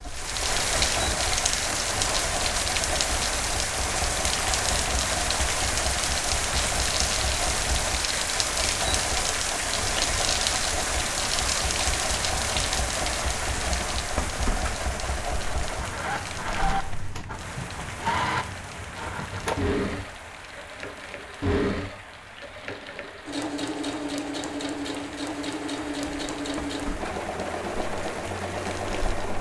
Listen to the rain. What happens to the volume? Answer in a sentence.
The volume of the rain goes down.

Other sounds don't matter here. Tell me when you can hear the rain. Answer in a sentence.
You can hear the rain from 0.0 to 29.3 s.